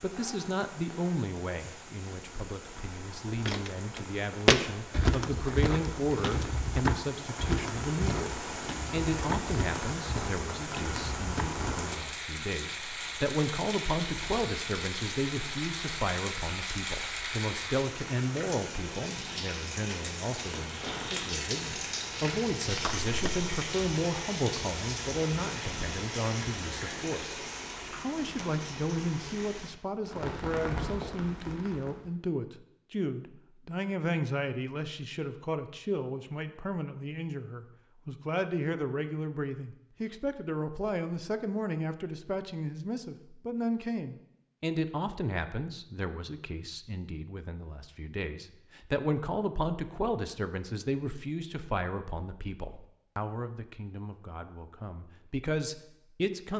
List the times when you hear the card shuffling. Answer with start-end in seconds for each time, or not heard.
22.7-23.5.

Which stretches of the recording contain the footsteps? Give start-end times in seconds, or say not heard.
3.5-11.8.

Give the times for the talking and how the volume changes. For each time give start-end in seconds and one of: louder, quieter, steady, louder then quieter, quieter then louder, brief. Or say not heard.
0.0-56.5 steady.